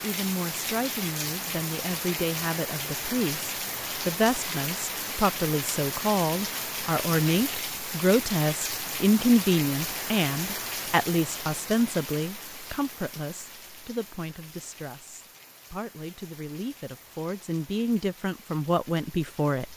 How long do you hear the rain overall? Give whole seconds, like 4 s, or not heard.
20 s.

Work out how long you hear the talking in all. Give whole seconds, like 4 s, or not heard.
20 s.